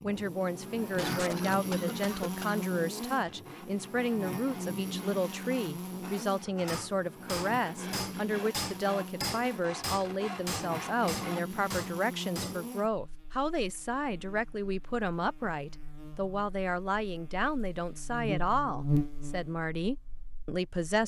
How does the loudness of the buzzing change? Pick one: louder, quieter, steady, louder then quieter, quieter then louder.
quieter then louder.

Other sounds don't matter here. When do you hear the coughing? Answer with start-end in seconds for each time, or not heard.
0.9-2.6.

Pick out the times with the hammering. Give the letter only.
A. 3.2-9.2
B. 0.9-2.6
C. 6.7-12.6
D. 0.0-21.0
C.